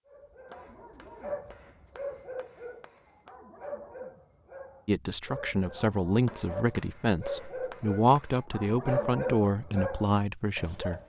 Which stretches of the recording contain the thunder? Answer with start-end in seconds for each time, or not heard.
not heard.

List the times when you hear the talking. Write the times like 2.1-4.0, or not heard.
4.8-11.0.